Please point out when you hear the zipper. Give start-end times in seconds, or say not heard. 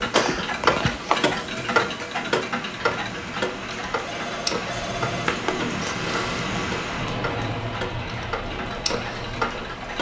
0.1-1.3, 5.2-6.5.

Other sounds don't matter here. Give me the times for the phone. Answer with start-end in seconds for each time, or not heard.
4.0-5.3.